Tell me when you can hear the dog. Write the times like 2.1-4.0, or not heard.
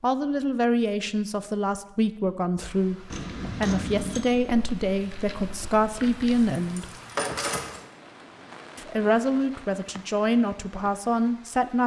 not heard.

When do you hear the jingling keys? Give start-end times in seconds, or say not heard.
3.1-4.2, 6.2-7.8.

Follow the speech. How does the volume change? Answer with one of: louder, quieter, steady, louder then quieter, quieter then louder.
steady.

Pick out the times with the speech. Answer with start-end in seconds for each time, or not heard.
0.0-6.9, 8.8-11.8.